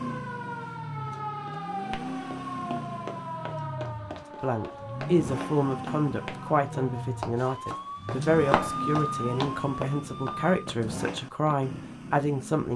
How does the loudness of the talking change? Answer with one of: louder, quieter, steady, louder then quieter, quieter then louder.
steady.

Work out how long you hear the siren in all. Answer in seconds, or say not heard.
11 s.